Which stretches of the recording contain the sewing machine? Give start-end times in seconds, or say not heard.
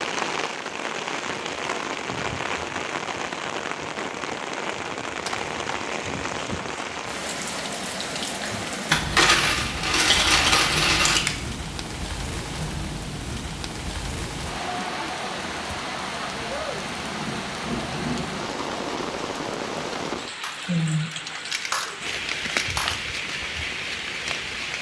not heard.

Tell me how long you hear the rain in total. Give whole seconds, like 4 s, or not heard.
25 s.